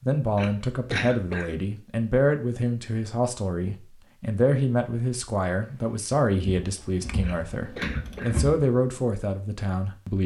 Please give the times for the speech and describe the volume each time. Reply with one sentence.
You can hear the speech from 0.0 to 10.2 s, at a steady volume.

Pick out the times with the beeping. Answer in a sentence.
The beeping can't be heard in this clip.